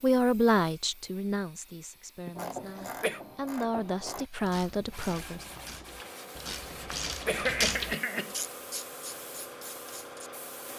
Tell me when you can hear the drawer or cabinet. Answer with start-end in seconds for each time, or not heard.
not heard.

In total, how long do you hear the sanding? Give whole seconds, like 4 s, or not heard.
3 s.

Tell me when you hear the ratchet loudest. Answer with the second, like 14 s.
8 s.